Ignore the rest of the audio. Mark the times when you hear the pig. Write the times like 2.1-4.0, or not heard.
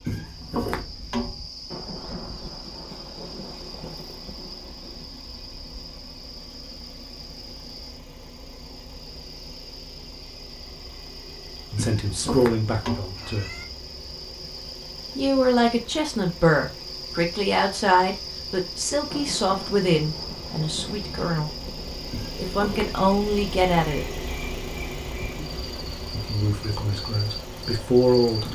not heard.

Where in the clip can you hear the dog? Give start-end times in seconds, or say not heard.
not heard.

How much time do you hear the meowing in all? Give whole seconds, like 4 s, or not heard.
4 s.